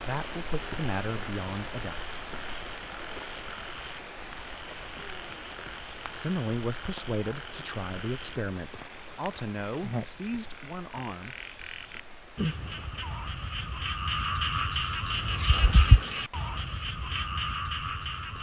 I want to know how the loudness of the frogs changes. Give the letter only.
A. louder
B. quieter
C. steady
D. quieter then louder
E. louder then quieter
A.